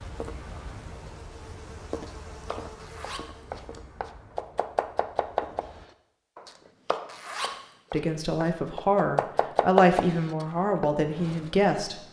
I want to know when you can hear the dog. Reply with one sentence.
You can't hear the dog here.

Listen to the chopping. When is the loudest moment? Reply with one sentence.
The loudest moment of the chopping is at 10 seconds.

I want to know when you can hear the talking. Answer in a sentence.
You can hear the talking from 7.9 to 12.0 s.